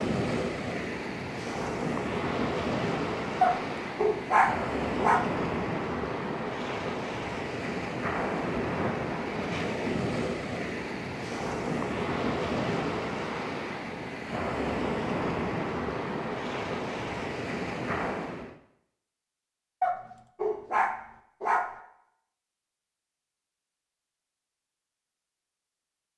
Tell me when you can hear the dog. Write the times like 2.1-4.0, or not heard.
3.4-5.2, 19.8-21.8.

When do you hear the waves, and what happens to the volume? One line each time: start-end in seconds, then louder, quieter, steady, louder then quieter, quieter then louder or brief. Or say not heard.
0.0-18.6 steady.